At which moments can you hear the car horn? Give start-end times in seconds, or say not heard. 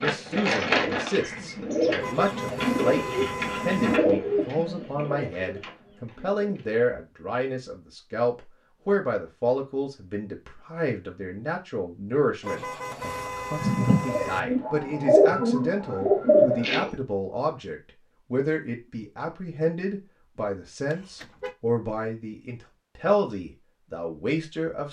2.0-4.0, 12.4-14.4, 20.9-21.6.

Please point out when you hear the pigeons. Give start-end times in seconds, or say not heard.
0.0-6.8, 13.6-16.9.